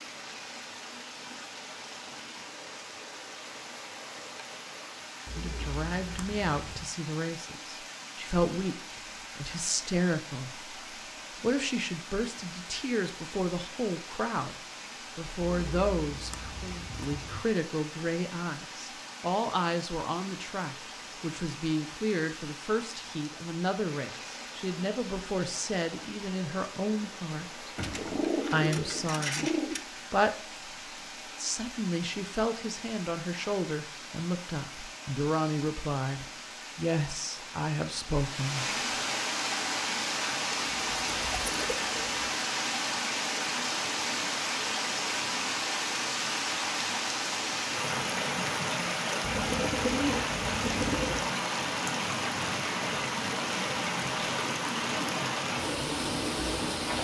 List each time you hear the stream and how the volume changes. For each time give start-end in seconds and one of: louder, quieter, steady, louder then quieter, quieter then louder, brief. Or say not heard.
0.0-56.9 louder.